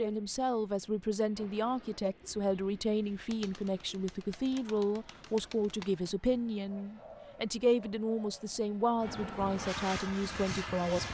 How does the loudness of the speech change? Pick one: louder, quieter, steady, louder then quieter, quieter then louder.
steady.